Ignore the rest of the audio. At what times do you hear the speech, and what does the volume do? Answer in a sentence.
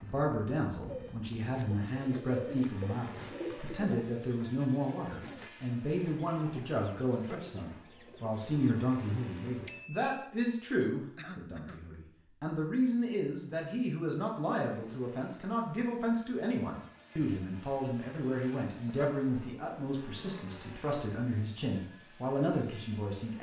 You can hear the speech from 0.0 to 23.3 s, at a steady volume.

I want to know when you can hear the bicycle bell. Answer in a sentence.
You can hear the bicycle bell from 9.7 to 10.2 s.